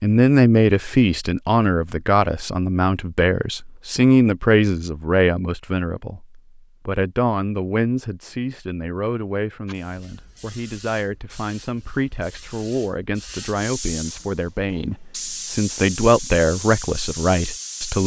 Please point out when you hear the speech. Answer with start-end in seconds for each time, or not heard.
0.0-18.0.